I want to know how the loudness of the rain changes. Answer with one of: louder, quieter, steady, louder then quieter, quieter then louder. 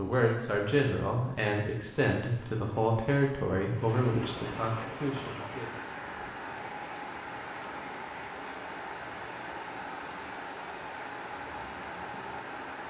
louder.